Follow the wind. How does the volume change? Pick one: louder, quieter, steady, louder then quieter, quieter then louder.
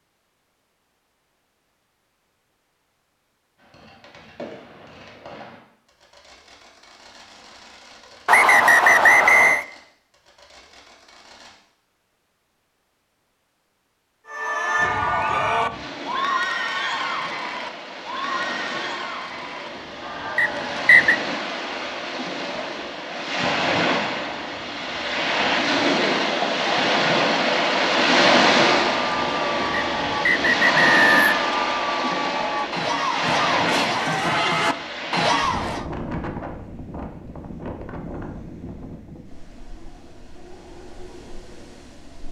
louder then quieter.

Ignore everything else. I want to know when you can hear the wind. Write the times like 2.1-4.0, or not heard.
14.8-42.2.